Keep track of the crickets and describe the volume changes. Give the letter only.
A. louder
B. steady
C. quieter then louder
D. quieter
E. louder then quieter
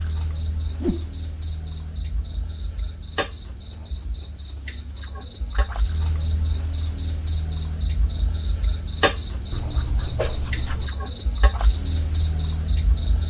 A.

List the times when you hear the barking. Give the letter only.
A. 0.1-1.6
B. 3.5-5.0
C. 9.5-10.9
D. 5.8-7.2
C.